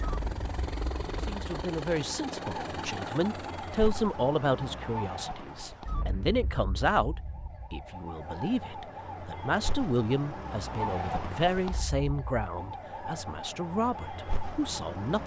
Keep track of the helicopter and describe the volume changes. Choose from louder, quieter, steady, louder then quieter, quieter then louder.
steady.